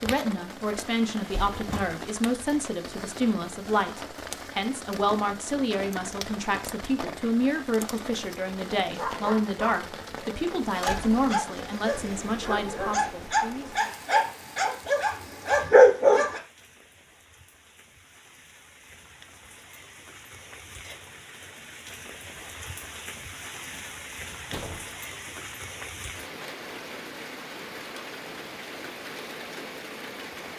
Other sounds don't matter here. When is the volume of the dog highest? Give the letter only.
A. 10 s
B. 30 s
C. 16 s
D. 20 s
C.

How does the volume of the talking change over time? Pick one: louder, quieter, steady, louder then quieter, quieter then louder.
steady.